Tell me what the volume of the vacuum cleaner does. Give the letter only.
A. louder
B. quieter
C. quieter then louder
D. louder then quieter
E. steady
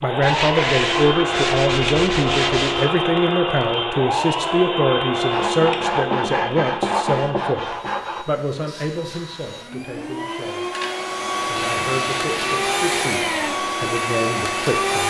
C.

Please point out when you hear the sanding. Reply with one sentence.
You can hear the sanding from 0.2 to 2.9 s, from 5.3 to 8.2 s and from 11.6 to 13.6 s.